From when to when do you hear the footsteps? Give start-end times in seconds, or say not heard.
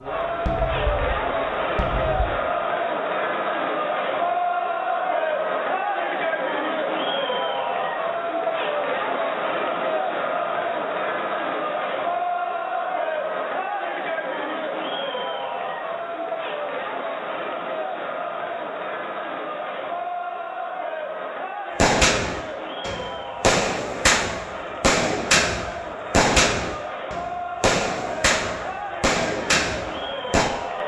not heard.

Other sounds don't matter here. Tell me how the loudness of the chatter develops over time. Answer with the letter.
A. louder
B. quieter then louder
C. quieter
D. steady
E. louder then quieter
C.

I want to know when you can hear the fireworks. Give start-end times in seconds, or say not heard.
0.0-2.3, 21.8-30.6.